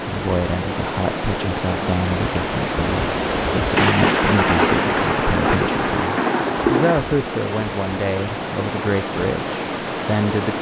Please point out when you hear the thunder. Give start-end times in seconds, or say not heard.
3.8-7.0.